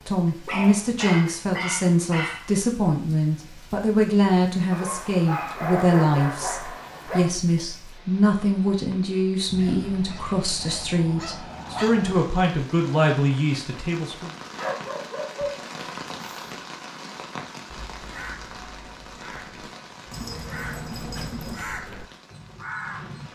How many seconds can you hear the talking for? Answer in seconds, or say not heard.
14 s.